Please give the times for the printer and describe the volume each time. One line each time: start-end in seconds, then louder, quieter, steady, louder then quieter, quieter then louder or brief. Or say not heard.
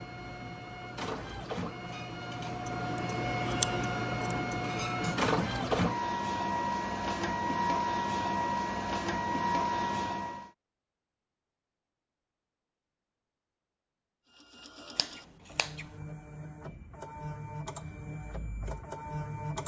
0.0-10.5 louder
14.2-19.6 louder.